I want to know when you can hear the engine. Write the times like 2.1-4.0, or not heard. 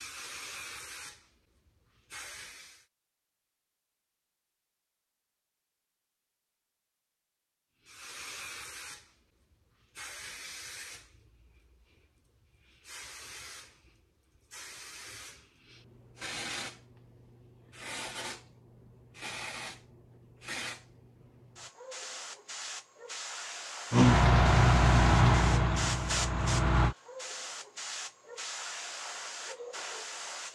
23.9-26.9.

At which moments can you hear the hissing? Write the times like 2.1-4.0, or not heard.
0.0-2.9, 7.8-30.4.